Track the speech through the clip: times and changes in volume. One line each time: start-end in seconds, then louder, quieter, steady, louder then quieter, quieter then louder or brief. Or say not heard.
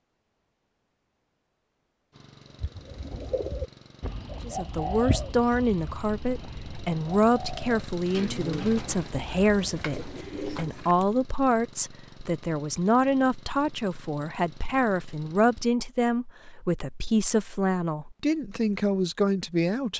4.5-19.9 steady.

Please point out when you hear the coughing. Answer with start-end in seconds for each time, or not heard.
8.2-8.8.